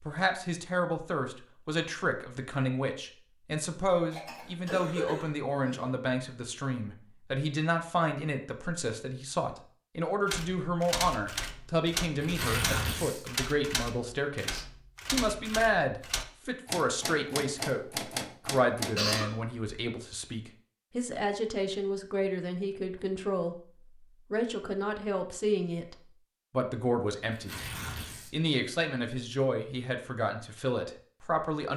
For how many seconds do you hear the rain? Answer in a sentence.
You can't hear the rain here.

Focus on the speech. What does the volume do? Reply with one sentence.
The volume of the speech stays about the same.